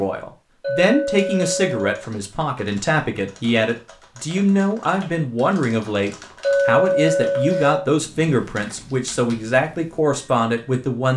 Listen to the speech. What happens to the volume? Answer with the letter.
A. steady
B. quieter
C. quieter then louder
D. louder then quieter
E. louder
A.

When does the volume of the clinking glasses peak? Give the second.
7 s.